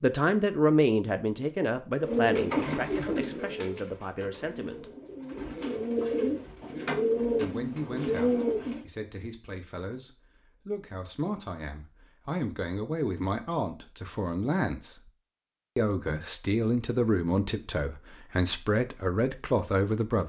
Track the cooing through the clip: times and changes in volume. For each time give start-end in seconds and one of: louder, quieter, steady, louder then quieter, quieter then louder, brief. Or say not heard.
2.0-8.8 quieter then louder.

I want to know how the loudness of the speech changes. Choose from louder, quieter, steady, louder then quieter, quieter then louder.
quieter then louder.